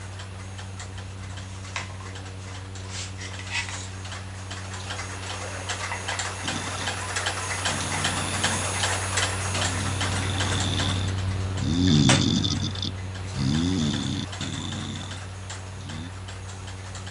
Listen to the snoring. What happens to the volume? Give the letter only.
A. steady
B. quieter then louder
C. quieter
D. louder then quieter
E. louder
D.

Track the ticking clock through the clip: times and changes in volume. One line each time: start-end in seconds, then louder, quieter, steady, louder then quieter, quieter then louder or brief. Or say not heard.
0.0-17.0 louder then quieter.